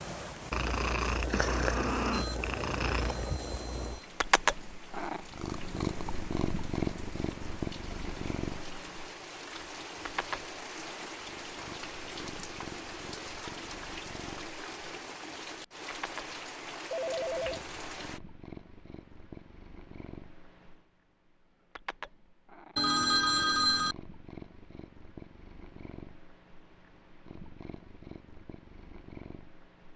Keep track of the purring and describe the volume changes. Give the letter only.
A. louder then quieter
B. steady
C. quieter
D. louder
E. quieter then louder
C.